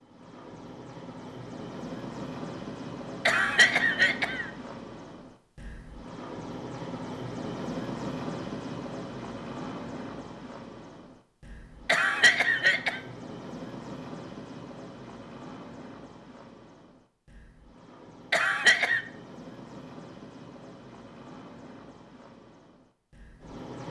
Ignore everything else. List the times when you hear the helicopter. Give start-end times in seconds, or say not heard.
0.0-23.8.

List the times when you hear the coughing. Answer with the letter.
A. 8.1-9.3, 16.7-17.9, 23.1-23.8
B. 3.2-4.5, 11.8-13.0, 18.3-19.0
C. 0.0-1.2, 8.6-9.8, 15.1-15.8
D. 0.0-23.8
B.